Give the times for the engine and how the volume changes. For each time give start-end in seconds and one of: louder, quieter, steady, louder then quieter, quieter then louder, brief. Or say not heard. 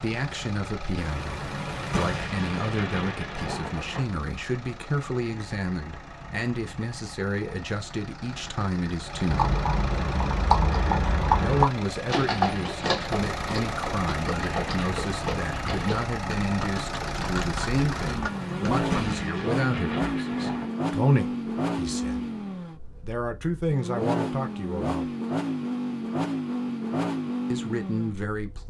0.0-28.6 louder.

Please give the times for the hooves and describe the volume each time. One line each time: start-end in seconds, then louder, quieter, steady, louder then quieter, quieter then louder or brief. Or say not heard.
9.2-18.9 quieter.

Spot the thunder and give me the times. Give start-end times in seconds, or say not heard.
0.9-4.0, 18.1-20.8.